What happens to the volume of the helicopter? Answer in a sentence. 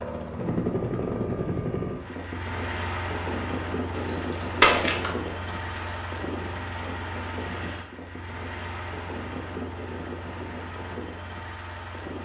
The loudness of the helicopter goes down.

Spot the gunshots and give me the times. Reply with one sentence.
The gunshots can be heard from 3.9 to 5.8 s.